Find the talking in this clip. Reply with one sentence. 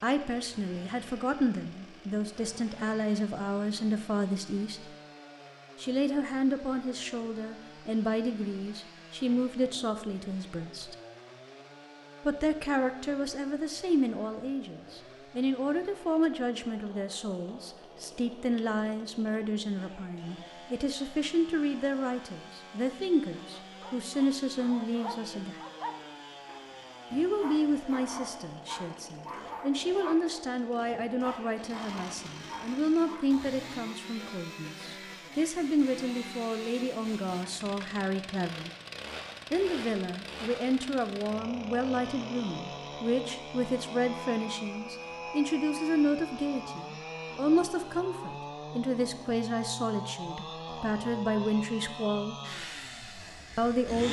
The talking can be heard from 0.0 to 4.8 s, from 5.8 to 10.9 s, from 12.2 to 25.6 s, from 27.1 to 38.7 s, from 39.5 to 52.4 s and from 53.5 to 54.0 s.